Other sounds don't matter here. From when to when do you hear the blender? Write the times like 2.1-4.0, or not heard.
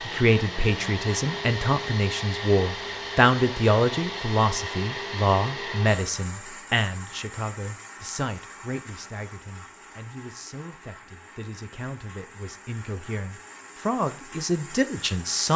0.0-15.5.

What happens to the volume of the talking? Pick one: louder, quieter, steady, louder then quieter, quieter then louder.
quieter then louder.